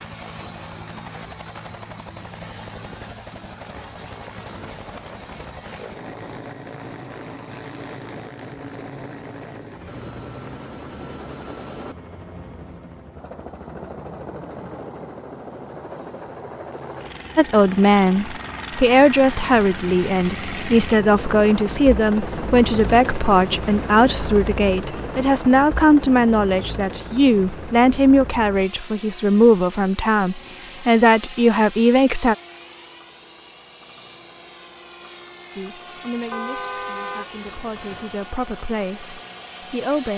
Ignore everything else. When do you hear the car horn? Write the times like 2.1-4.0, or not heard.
36.3-38.2.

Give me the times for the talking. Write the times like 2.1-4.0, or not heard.
17.4-32.4, 35.5-40.1.